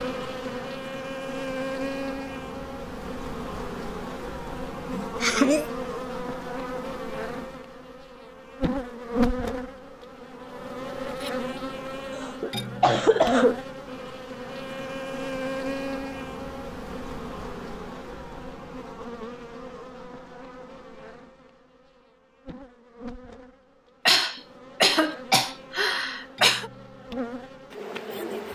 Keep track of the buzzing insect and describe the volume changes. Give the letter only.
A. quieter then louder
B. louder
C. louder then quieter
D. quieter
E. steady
D.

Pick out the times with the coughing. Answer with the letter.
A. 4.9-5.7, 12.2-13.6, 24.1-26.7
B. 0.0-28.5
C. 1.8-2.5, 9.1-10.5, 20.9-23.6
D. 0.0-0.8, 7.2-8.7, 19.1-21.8
A.